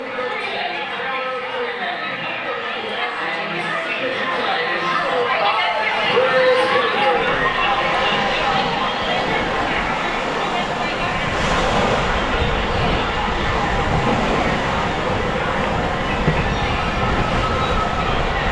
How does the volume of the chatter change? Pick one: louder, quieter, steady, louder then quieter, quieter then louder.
louder then quieter.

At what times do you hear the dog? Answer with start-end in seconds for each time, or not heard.
not heard.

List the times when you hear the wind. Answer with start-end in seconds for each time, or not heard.
7.1-18.4.